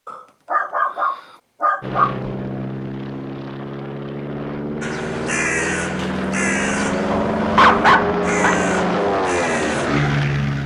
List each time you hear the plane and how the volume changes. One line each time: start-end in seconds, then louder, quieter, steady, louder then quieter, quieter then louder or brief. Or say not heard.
1.8-10.6 louder.